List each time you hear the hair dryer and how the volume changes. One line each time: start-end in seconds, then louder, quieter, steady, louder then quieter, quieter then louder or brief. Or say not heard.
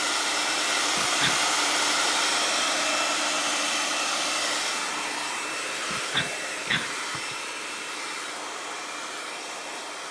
0.0-10.0 quieter.